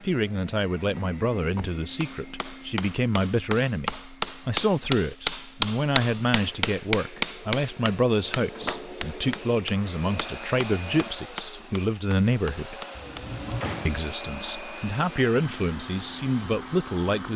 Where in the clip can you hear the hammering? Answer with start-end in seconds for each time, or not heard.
2.0-13.6.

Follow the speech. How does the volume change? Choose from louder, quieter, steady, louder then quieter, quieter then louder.
steady.